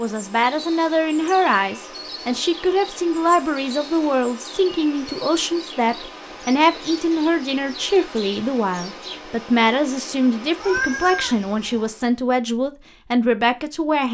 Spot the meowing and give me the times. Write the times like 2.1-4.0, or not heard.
10.6-11.9.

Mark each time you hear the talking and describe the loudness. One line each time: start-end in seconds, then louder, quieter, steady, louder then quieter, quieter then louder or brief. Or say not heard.
0.0-14.0 steady.